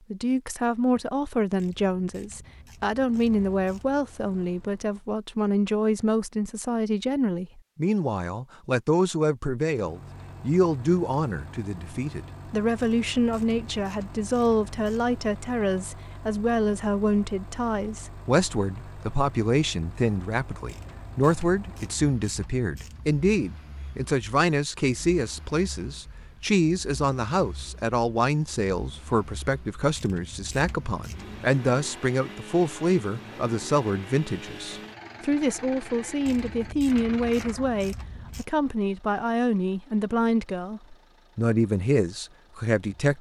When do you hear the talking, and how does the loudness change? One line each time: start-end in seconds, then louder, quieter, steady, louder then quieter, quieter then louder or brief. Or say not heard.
0.1-43.1 steady.